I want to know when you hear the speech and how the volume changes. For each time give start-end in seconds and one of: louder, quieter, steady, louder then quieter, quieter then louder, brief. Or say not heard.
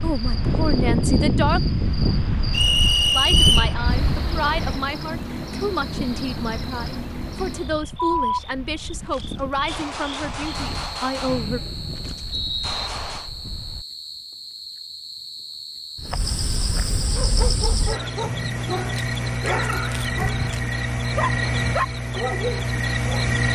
0.0-1.6 brief
3.1-11.6 steady.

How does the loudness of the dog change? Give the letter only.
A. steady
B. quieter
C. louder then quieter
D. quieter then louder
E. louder
E.